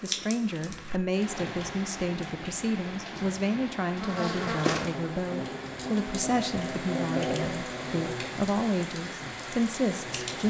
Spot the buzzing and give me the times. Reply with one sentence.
You can hear the buzzing from 4.0 to 10.4 s.